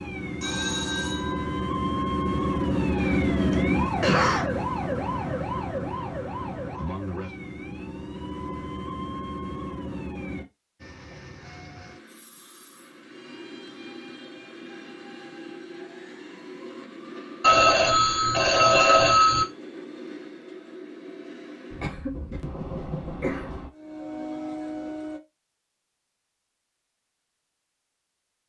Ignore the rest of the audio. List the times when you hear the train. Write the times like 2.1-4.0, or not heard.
10.8-25.2.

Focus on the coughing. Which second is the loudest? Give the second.
4 s.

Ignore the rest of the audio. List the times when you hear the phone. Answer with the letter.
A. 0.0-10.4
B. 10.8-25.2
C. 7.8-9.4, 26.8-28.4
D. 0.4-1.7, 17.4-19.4
D.